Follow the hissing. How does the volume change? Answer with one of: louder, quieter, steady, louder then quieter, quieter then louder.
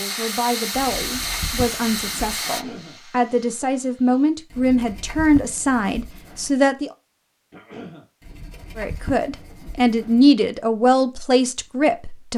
quieter.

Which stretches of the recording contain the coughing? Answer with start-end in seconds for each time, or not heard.
2.4-3.0, 7.5-8.1.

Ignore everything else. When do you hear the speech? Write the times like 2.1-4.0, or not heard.
0.0-6.9, 8.8-12.3.